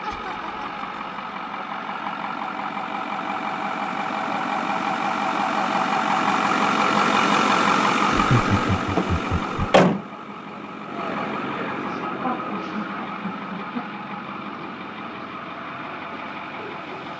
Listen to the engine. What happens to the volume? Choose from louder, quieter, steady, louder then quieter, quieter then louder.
louder then quieter.